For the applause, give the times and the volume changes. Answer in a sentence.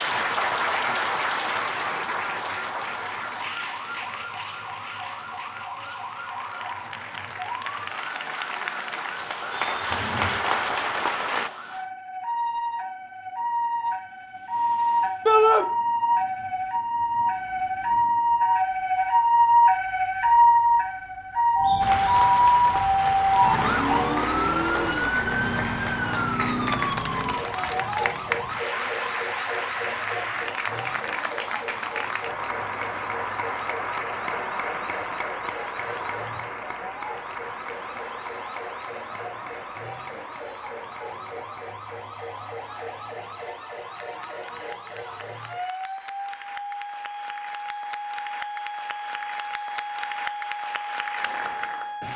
You can hear the applause from 0.0 to 11.5 s, getting quieter then louder; and from 21.8 to 52.1 s, getting quieter then louder.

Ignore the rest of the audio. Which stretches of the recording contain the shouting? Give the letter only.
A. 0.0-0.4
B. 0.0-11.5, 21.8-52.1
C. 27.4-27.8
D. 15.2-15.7
D.